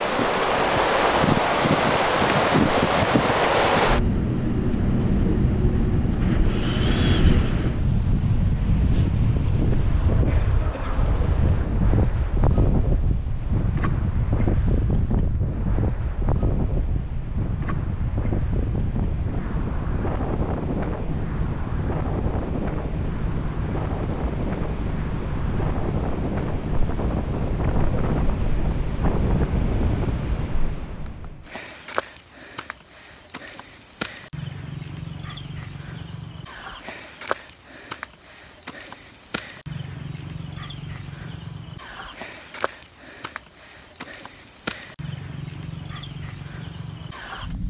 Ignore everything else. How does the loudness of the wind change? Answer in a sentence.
The loudness of the wind goes down.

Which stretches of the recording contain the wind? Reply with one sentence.
You can hear the wind from 0.0 to 30.1 s.